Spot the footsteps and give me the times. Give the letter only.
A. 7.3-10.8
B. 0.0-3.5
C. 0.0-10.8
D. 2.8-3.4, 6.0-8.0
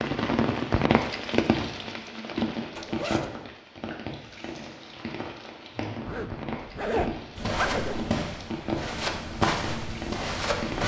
A.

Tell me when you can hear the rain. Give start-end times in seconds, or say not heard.
0.0-10.8.